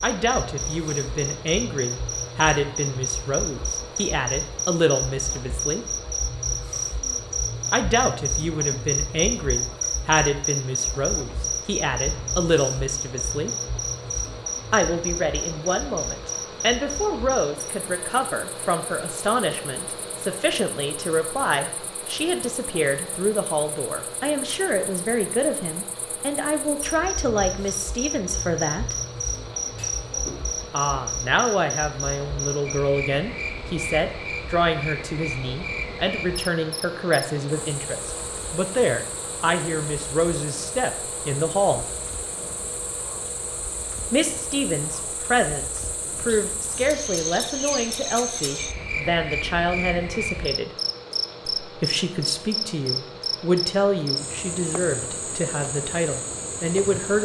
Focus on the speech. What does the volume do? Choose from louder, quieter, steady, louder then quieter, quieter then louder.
steady.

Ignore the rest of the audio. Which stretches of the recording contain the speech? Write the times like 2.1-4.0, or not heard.
0.0-5.8, 7.7-13.5, 14.7-28.9, 30.7-41.9, 44.1-50.8, 51.6-57.1.